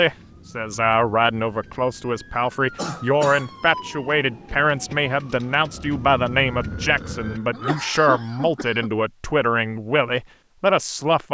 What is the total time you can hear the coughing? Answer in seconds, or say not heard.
3 s.